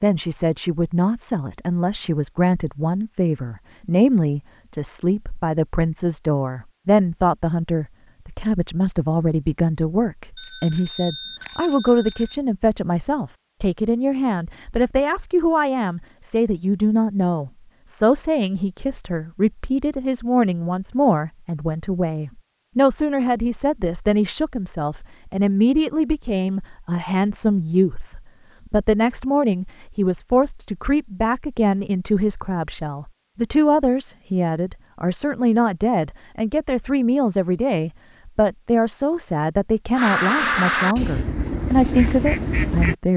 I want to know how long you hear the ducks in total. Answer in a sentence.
The ducks can be heard for 3 seconds in total.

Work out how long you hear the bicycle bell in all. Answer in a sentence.
The bicycle bell can be heard for 2 seconds in total.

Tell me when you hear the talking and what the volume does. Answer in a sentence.
You can hear the talking from 0.0 to 43.1 s, at a steady volume.